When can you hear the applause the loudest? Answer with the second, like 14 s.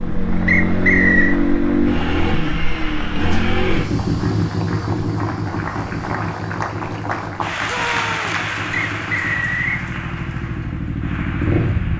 8 s.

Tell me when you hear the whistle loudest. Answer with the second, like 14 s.
1 s.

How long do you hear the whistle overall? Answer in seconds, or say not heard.
2 s.